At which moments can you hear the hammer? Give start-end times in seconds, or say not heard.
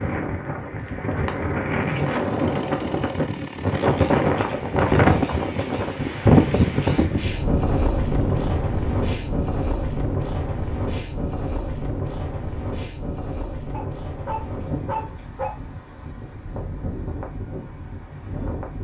not heard.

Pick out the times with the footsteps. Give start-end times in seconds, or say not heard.
not heard.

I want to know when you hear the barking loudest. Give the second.
15 s.